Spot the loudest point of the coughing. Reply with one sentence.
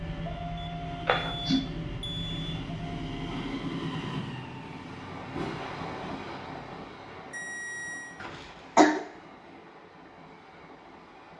The volume of the coughing peaks at 9 seconds.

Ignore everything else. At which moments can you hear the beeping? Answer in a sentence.
The beeping can be heard from 0.6 to 2.5 s and from 7.3 to 8.2 s.